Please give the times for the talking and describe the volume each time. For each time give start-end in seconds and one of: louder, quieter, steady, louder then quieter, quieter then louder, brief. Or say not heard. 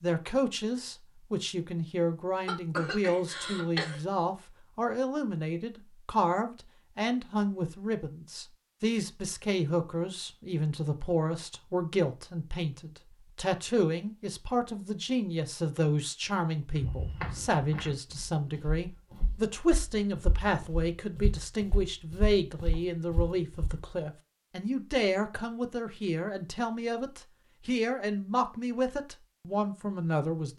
0.0-30.5 steady.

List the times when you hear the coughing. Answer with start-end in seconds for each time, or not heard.
2.5-4.0.